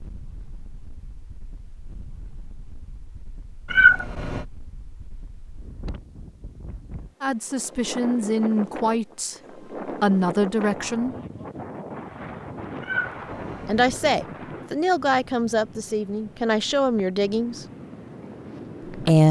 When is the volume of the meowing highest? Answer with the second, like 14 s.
4 s.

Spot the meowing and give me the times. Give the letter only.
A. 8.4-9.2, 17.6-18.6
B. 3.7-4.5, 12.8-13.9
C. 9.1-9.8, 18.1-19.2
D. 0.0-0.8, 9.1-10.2
B.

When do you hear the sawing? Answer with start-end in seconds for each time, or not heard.
not heard.